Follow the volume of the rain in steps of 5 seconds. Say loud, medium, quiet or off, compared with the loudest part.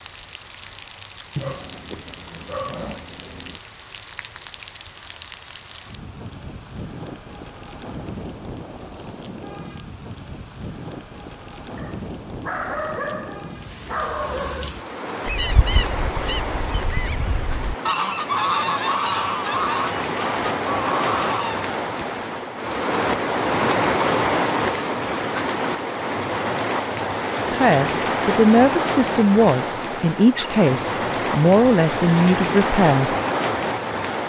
quiet, quiet, quiet, medium, loud, loud, loud.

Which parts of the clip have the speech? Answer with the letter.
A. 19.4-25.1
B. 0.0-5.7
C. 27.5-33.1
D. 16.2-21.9
C.